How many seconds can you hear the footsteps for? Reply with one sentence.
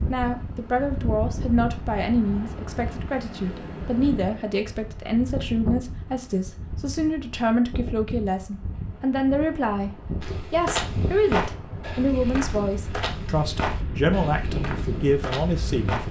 You can hear the footsteps for 6 seconds altogether.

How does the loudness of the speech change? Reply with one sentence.
The loudness of the speech stays about the same.